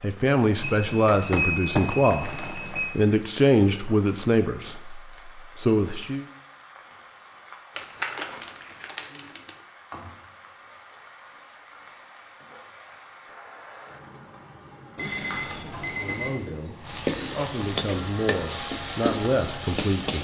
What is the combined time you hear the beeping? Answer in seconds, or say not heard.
4 s.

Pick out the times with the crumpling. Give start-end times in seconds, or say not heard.
1.3-2.9, 7.8-9.6, 15.3-15.9.